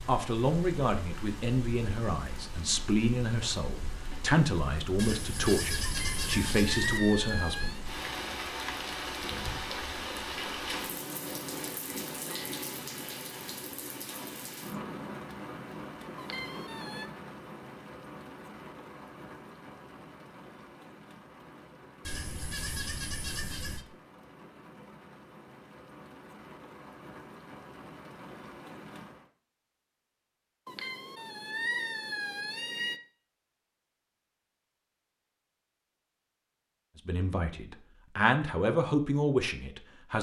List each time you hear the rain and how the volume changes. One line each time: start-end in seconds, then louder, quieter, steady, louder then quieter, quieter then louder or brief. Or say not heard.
0.0-29.3 louder then quieter.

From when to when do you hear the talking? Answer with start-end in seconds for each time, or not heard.
0.1-7.8, 37.0-40.1.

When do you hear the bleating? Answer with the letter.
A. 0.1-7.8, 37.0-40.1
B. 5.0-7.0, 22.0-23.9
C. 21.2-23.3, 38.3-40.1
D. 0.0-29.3
B.